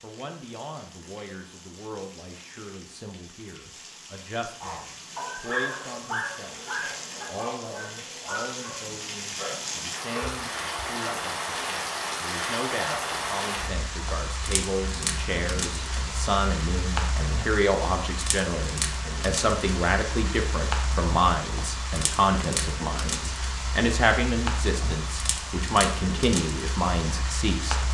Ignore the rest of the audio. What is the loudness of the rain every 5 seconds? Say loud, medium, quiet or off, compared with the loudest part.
quiet, medium, loud, loud, loud, loud.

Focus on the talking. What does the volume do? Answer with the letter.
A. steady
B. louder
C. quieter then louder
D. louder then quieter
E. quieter
B.